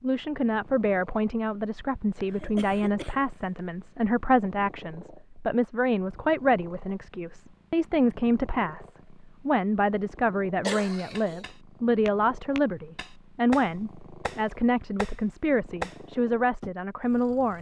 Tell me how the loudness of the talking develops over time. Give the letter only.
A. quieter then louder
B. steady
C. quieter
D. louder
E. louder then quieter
B.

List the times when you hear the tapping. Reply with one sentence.
You can hear the tapping from 11.2 to 16.7 s.